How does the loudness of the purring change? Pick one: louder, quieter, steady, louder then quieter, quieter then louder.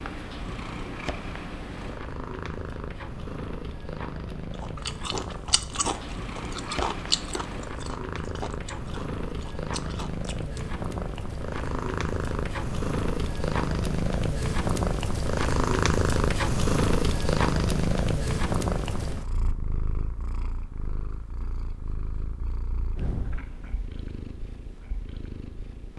louder then quieter.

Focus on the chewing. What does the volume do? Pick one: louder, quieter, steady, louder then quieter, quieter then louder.
quieter.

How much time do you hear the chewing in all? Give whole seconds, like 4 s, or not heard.
6 s.